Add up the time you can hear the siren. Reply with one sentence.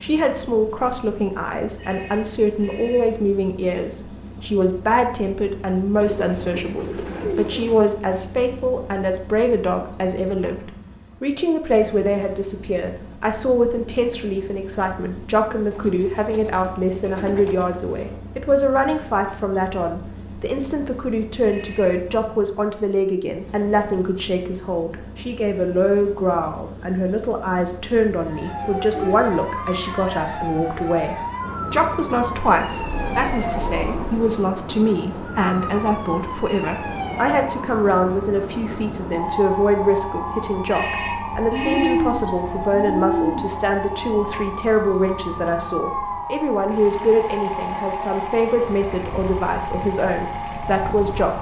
You can hear the siren for 23 seconds altogether.